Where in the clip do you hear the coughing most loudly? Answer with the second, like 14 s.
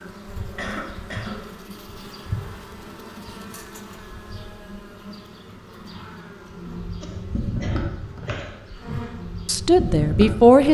1 s.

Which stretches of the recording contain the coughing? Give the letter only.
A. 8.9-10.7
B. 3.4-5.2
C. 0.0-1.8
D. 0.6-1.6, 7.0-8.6
D.